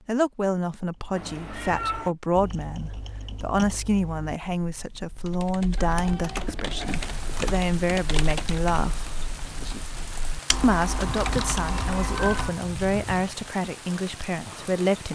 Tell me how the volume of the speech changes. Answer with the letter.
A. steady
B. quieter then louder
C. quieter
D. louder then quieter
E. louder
A.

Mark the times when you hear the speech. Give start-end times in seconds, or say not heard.
0.1-9.1, 10.6-15.1.